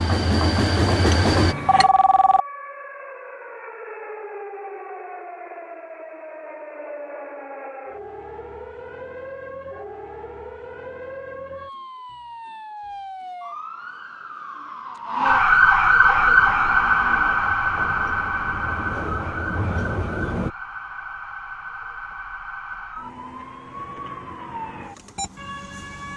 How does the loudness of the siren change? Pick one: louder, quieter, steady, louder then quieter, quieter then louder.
louder then quieter.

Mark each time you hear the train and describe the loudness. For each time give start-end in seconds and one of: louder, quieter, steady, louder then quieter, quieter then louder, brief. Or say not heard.
0.0-1.6 brief
16.1-20.5 louder.